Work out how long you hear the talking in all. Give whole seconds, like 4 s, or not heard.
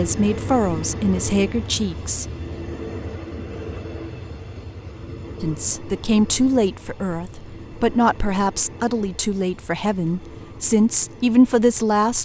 9 s.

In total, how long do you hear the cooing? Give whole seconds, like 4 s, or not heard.
not heard.